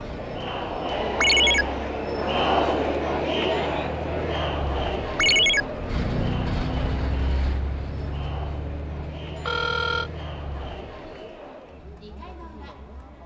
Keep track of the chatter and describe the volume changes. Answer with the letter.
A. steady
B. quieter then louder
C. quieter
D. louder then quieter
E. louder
C.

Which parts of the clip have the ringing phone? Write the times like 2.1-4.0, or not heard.
1.2-1.6, 5.2-5.7, 9.4-10.1.